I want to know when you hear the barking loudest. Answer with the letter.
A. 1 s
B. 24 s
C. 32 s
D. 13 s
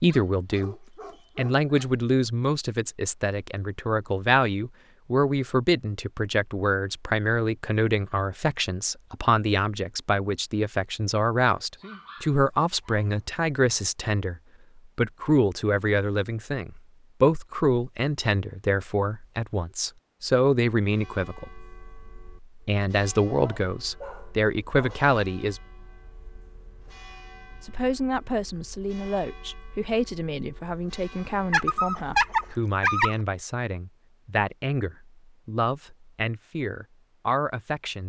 C.